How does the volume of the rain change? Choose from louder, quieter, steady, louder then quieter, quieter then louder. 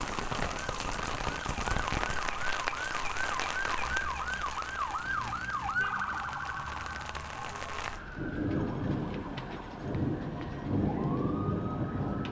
quieter then louder.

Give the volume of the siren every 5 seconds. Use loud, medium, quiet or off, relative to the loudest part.
loud, loud, medium.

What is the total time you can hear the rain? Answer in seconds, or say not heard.
12 s.